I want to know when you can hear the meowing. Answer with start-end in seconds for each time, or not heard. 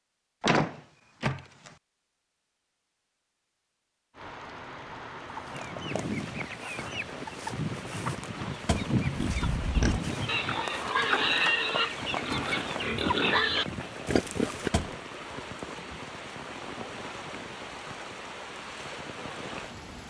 not heard.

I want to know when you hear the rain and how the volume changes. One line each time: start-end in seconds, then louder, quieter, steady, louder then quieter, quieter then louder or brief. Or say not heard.
4.1-20.0 steady.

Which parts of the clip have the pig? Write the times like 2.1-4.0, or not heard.
9.2-14.7.